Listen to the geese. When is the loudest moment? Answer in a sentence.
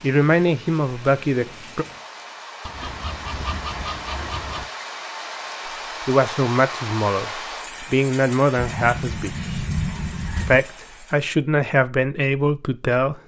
The loudest moment of the geese is at 10 seconds.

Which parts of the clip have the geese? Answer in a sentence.
You can hear the geese from 2.6 to 4.7 s and from 8.6 to 10.6 s.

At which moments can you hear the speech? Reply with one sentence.
You can hear the speech from 0.0 to 1.9 s, from 6.0 to 9.3 s and from 10.3 to 13.2 s.